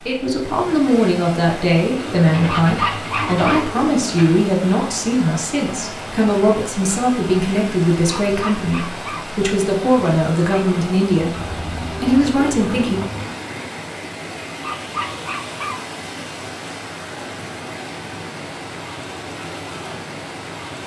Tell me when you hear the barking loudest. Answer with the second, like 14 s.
3 s.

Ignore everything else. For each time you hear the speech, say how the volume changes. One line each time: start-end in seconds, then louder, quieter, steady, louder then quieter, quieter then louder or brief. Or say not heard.
0.1-13.0 steady.